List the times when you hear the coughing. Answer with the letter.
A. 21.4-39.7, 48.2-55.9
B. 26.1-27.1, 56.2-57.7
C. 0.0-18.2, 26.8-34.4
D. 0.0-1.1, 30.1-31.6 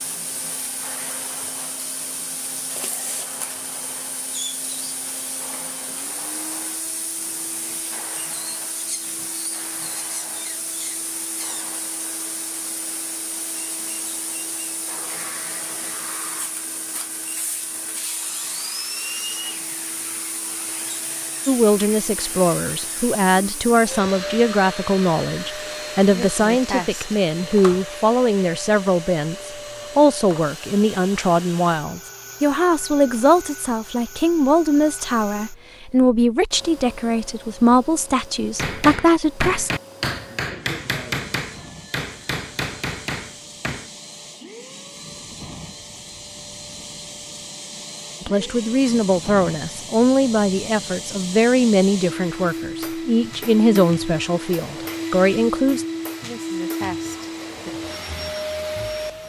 B.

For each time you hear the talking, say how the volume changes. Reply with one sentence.
The talking can be heard from 21.4 to 39.7 s, at a steady volume; and from 48.2 to 55.9 s, at a steady volume.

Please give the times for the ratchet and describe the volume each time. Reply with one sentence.
You can't hear the ratchet here.